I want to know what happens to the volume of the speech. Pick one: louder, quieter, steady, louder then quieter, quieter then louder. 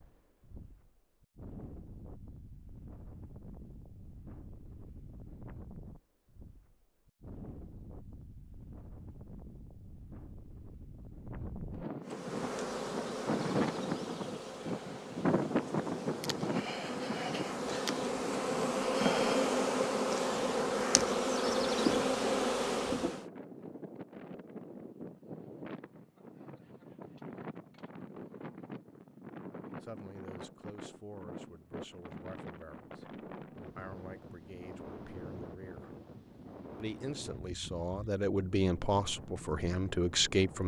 louder.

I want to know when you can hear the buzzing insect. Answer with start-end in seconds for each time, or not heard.
12.1-23.2.